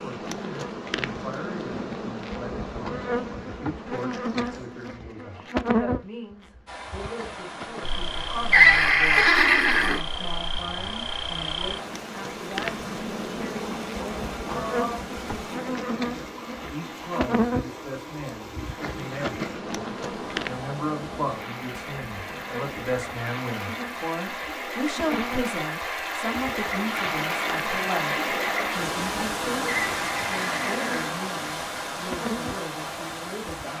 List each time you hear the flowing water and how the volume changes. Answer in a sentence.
You can hear the flowing water from 6.7 to 33.7 s, getting louder.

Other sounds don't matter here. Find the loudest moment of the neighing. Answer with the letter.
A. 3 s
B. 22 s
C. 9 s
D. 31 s
C.